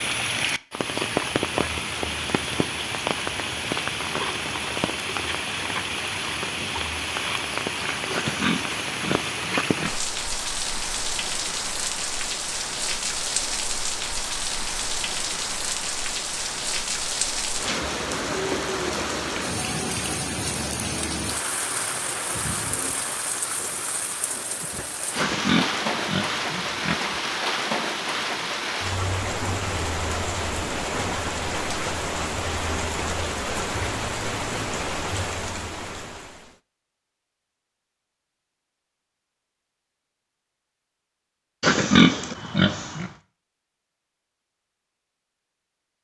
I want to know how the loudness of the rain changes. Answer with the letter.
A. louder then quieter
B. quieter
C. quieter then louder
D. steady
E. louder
D.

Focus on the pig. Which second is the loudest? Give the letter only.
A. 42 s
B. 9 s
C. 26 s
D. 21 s
A.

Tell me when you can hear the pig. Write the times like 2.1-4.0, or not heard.
8.1-9.9, 25.1-26.9, 41.6-43.1.